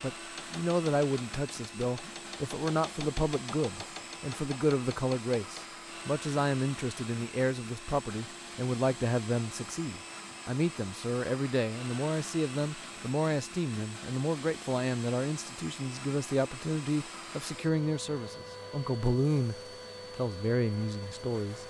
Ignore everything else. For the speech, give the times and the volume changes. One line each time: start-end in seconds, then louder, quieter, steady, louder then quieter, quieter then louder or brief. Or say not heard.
0.0-19.6 steady
20.1-21.6 brief.